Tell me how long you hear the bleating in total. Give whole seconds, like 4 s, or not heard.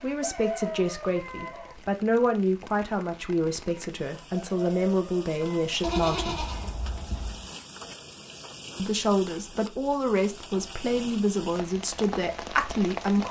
2 s.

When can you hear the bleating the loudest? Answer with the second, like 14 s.
6 s.